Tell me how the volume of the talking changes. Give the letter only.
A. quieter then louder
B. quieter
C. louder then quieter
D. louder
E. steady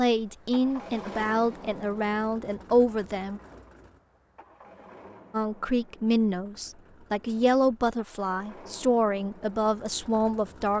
E.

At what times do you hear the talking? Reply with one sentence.
The talking can be heard from 0.0 to 3.4 s and from 5.3 to 10.7 s.